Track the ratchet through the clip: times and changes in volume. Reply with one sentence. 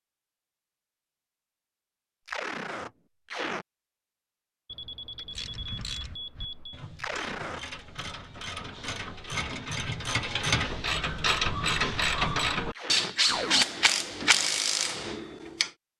You can hear the ratchet from 5.3 to 15.7 s, getting louder.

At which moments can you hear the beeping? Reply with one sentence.
You can hear the beeping from 4.7 to 6.8 s.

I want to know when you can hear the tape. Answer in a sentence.
You can hear the tape from 2.2 to 3.6 s, from 7.0 to 7.6 s and from 11.7 to 13.7 s.